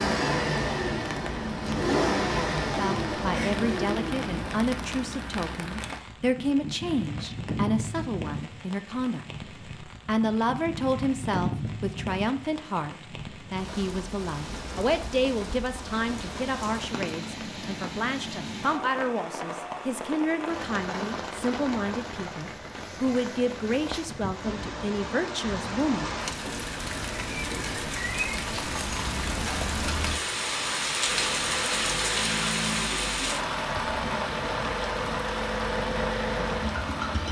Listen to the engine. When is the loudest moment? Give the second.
2 s.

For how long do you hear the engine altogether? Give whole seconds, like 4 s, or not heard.
11 s.